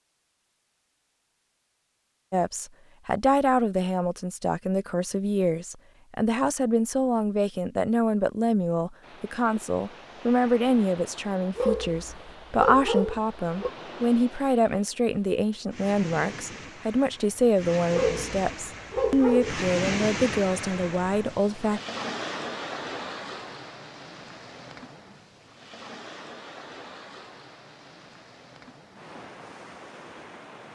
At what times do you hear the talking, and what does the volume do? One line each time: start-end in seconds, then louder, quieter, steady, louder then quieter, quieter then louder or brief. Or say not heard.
2.3-21.8 steady.